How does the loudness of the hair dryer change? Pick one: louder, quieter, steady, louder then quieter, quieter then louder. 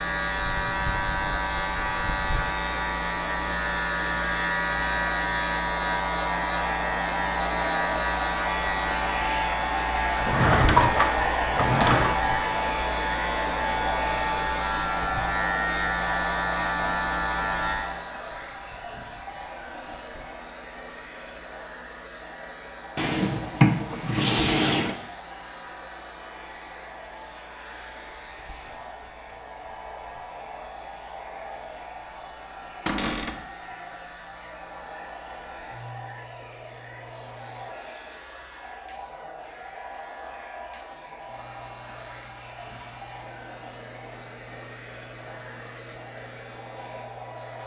quieter.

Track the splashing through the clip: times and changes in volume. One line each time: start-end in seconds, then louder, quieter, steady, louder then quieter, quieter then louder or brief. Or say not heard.
not heard.